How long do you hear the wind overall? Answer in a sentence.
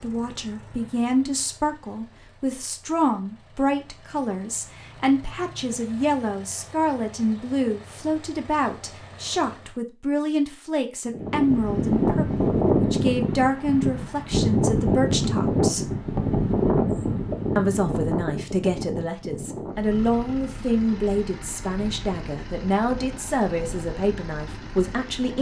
The wind can be heard for 14 seconds in total.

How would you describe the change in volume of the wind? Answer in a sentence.
The loudness of the wind goes down.